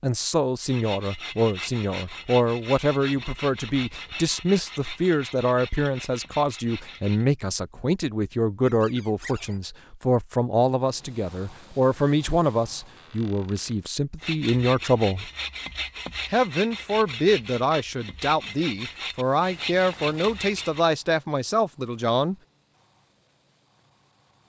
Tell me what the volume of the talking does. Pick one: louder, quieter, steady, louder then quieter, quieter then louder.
steady.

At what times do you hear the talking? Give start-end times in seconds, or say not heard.
0.0-15.3, 16.3-22.4.